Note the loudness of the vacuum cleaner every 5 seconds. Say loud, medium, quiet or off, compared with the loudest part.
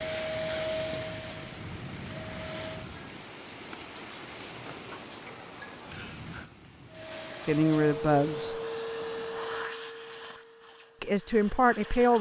loud, loud, medium.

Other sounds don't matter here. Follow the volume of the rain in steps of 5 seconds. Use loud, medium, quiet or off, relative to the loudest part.
loud, loud, off.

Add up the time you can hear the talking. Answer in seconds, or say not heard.
2 s.